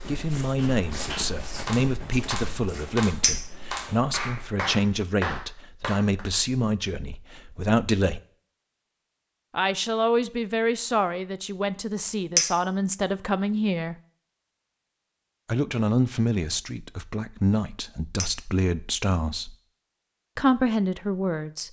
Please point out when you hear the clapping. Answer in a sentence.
The clapping can be heard from 0.6 to 6.2 s.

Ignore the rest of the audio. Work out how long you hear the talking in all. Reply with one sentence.
You can hear the talking for 18 seconds altogether.